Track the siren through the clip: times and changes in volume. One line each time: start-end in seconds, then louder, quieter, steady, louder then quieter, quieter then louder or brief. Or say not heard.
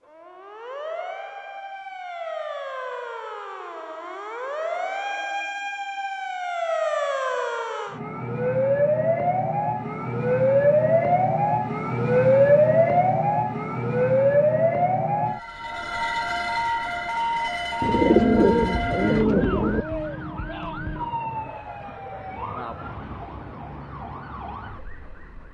0.0-25.5 louder then quieter.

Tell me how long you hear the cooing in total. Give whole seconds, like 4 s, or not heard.
2 s.